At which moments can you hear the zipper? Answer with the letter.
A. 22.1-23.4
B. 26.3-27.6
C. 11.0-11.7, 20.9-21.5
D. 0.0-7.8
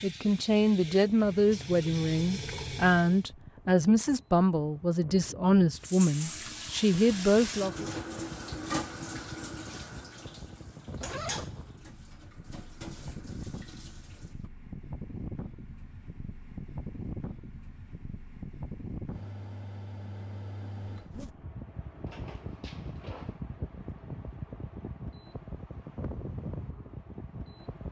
C.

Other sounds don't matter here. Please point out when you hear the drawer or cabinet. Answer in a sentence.
You can hear the drawer or cabinet from 22.1 to 23.4 s.